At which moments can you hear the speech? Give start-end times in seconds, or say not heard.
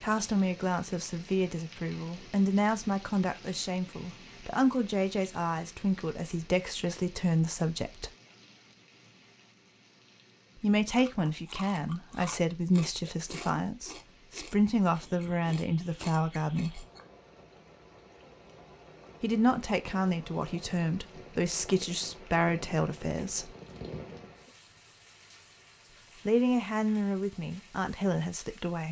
0.0-8.1, 10.6-16.9, 19.2-23.5, 26.2-28.8.